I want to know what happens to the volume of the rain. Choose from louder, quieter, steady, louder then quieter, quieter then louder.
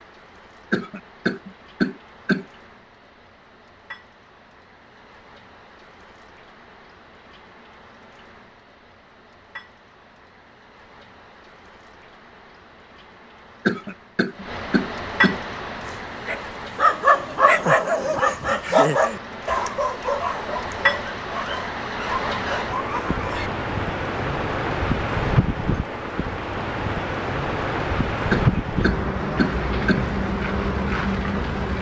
louder.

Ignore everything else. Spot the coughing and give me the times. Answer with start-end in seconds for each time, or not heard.
0.7-2.5, 13.7-15.4, 28.3-30.1.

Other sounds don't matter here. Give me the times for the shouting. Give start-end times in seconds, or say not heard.
not heard.